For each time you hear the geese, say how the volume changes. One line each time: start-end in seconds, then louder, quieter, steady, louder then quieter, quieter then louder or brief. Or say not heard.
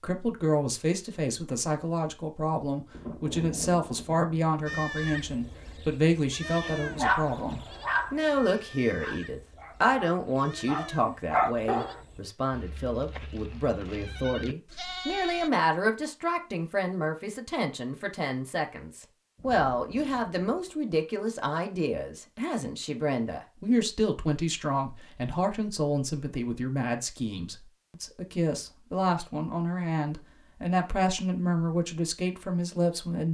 not heard.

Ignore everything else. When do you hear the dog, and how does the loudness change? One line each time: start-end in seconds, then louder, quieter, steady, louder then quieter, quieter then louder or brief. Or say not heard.
6.8-12.0 quieter then louder.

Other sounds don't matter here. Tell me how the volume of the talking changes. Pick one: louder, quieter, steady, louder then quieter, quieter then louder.
steady.